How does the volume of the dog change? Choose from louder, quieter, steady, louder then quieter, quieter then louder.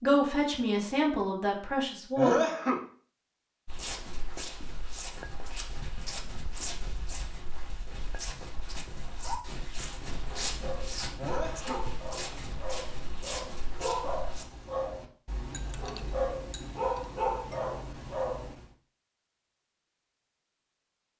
louder.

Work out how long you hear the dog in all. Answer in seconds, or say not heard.
9 s.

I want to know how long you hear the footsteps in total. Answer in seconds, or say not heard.
11 s.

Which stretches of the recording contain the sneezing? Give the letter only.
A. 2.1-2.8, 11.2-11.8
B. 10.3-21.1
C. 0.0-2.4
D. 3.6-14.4
A.